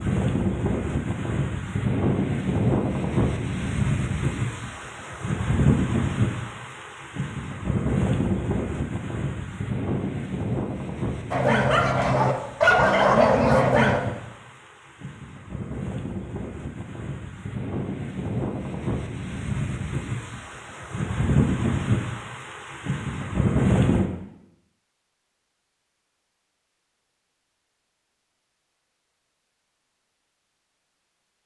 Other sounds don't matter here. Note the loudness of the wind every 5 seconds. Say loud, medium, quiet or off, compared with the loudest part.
loud, loud, medium, medium, loud, off, off.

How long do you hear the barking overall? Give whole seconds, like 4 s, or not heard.
3 s.